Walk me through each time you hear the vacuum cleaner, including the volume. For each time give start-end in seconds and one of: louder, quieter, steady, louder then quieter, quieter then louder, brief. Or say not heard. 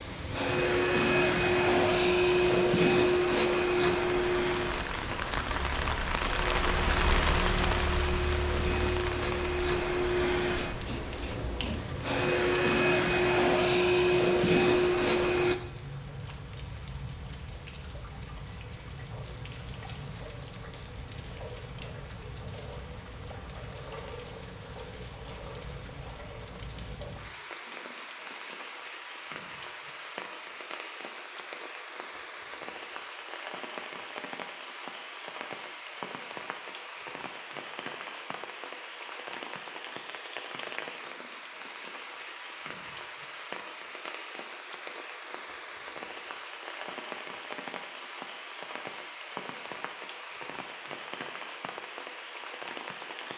0.0-15.6 quieter then louder.